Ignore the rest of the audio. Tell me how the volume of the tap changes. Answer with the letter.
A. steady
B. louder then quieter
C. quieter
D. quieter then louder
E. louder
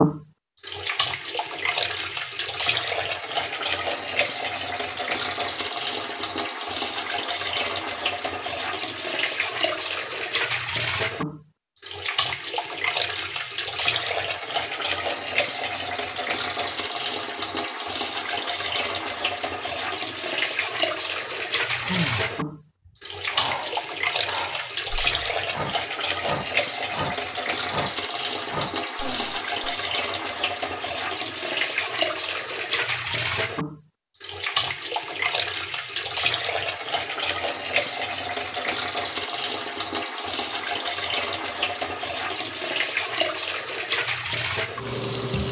A.